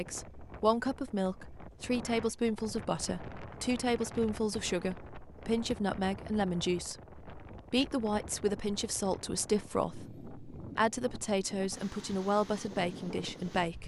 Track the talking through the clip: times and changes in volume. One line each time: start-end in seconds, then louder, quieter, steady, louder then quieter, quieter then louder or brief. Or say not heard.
0.0-13.8 steady.